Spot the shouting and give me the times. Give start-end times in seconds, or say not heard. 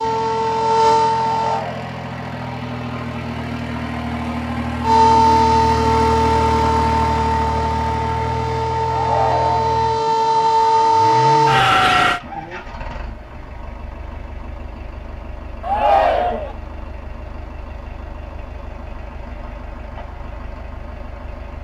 1.4-1.9, 8.9-9.8, 15.6-16.6.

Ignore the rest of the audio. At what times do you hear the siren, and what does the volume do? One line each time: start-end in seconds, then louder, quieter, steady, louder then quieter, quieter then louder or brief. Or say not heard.
0.0-1.6 brief
4.8-12.2 quieter then louder.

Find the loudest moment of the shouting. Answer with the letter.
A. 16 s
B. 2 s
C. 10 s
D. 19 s
A.